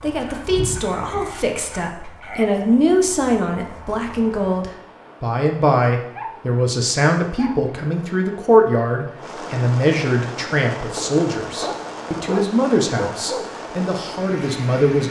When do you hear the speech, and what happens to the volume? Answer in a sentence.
You can hear the speech from 0.0 to 15.0 s, at a steady volume.